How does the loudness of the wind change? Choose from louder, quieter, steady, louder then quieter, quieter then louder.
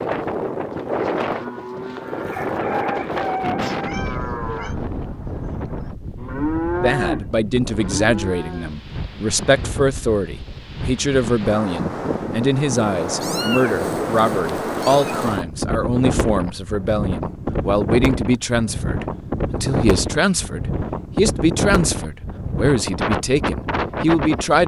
quieter then louder.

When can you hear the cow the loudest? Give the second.
7 s.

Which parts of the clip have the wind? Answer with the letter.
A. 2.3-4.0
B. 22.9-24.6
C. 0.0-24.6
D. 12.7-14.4
C.